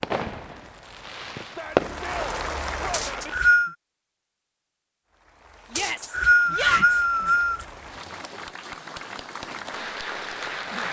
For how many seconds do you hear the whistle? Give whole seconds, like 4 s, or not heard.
3 s.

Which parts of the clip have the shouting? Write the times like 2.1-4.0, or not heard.
1.4-3.3, 5.7-6.8.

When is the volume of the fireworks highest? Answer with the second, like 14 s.
2 s.